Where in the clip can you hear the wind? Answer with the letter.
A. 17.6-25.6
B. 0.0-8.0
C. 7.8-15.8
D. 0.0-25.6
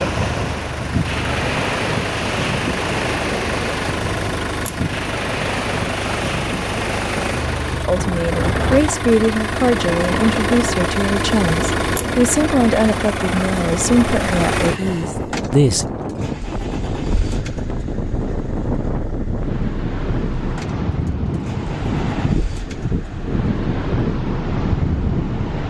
D.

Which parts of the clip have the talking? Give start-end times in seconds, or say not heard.
7.8-15.8.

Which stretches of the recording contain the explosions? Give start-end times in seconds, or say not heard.
not heard.